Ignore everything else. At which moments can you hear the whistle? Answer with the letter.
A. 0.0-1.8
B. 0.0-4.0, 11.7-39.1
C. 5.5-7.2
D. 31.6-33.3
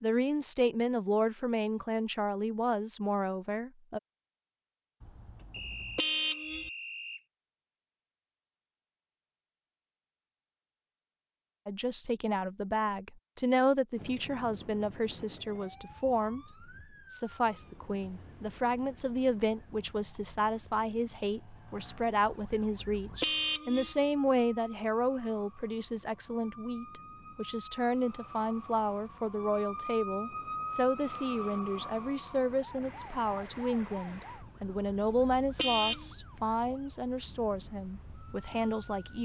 C.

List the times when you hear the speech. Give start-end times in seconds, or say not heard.
0.0-4.0, 11.7-39.1.